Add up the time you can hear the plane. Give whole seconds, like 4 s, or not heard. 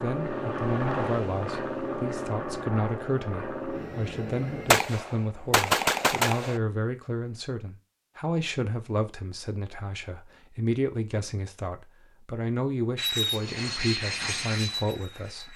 7 s.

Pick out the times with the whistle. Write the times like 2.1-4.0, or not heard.
not heard.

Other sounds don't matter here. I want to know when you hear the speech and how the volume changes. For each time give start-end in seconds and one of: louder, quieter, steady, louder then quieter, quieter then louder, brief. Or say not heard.
0.0-15.5 steady.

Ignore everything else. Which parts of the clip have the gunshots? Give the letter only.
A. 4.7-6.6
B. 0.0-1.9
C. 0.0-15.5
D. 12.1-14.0
A.